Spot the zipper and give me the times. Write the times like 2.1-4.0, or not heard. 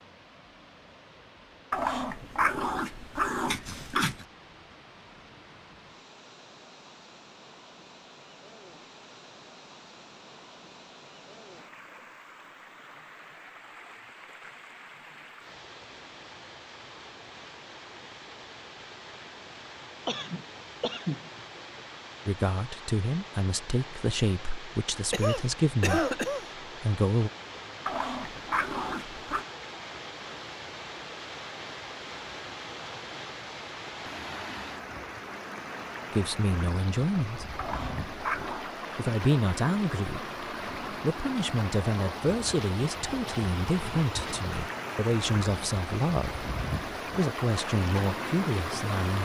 not heard.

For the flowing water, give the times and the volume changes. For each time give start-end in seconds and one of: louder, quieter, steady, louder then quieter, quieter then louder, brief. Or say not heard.
0.0-49.1 louder.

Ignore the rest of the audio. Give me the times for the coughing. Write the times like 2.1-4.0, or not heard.
20.1-21.3, 25.1-26.4.